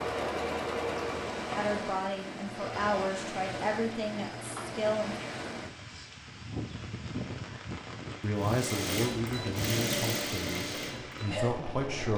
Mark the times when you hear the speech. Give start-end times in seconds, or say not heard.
1.6-5.2, 8.2-12.1.